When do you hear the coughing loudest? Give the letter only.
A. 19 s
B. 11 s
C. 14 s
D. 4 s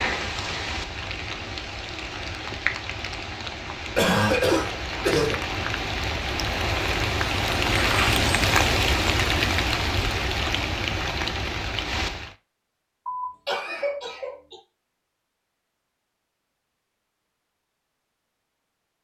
D.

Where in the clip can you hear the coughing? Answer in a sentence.
You can hear the coughing from 4.0 to 5.4 s and from 13.1 to 14.6 s.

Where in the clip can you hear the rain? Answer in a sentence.
You can hear the rain from 0.0 to 12.3 s.